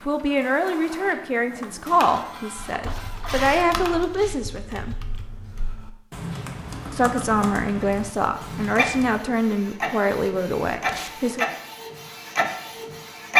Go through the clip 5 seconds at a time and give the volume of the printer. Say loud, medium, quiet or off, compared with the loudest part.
medium, medium, loud.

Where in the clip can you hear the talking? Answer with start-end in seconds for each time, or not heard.
0.0-5.0, 6.9-11.5.